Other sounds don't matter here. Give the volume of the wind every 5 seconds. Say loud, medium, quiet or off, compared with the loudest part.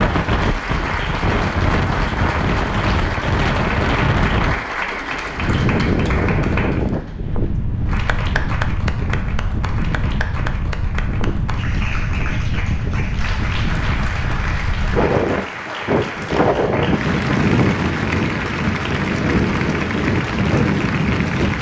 loud, loud, medium, loud, loud.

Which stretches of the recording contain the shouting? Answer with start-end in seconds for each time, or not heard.
not heard.